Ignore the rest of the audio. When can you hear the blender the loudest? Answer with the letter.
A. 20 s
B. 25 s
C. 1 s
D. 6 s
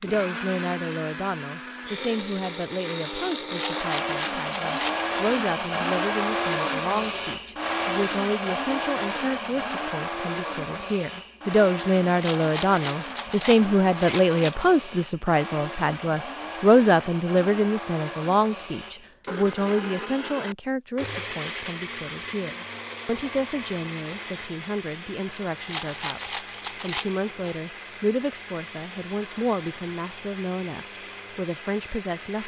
D.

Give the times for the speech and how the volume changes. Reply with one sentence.
The speech can be heard from 0.0 to 32.4 s, getting louder then quieter.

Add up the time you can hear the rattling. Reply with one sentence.
You can hear the rattling for 6 seconds altogether.